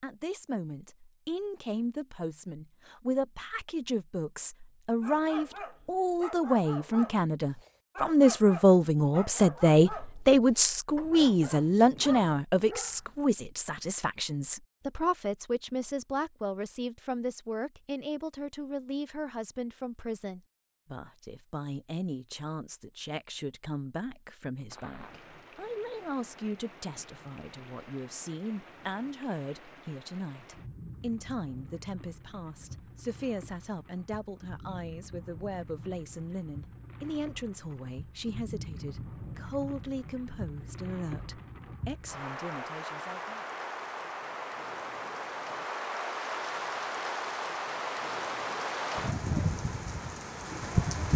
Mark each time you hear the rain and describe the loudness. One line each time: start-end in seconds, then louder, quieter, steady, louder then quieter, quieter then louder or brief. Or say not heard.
24.7-51.1 louder.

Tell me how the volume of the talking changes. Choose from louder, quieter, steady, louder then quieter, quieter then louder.
quieter.